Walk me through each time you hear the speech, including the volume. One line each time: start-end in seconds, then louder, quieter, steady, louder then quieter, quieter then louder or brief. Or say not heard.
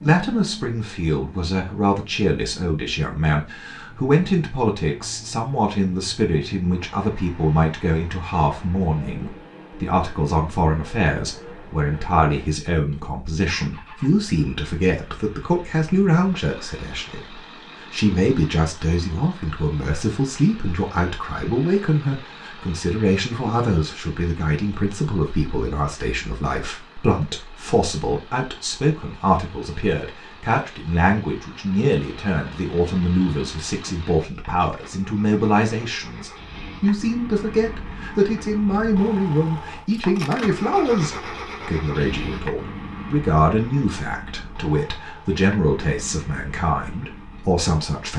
0.0-48.1 steady.